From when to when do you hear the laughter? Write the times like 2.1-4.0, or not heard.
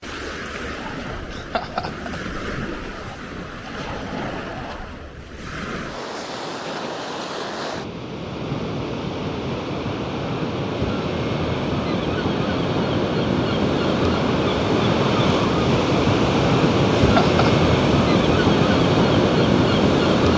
1.3-2.2, 16.9-17.4.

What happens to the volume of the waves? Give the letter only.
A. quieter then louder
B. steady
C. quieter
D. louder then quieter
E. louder
E.